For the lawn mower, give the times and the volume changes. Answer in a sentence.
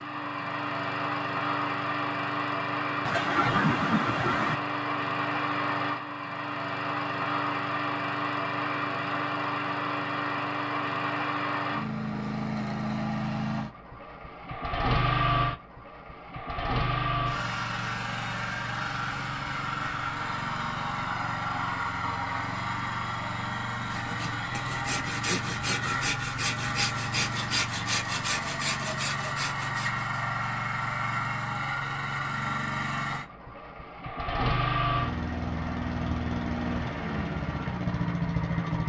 The lawn mower can be heard from 0.0 to 38.8 s, at a steady volume.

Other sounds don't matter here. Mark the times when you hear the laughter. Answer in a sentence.
You can hear the laughter from 3.0 to 4.6 s.